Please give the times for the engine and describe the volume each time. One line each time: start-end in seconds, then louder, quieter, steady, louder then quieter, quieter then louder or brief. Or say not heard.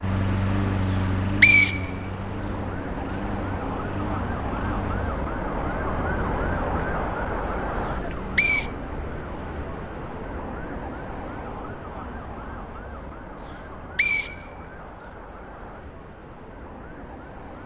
0.0-5.2 quieter.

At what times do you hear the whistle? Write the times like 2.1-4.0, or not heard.
0.9-2.5, 7.8-8.7, 13.4-15.1.